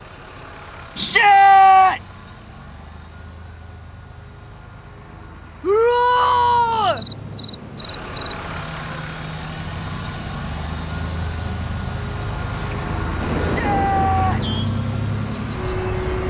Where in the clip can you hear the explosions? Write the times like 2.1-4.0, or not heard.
13.2-14.7.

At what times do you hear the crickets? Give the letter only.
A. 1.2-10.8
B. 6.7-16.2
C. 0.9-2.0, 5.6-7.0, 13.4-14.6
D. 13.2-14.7
B.